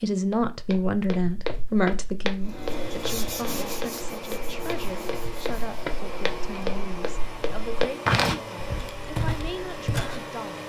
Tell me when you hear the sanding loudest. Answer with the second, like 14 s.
3 s.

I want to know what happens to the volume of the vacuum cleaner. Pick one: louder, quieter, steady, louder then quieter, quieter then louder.
steady.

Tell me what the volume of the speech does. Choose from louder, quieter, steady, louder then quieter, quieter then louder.
quieter.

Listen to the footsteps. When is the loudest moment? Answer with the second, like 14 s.
8 s.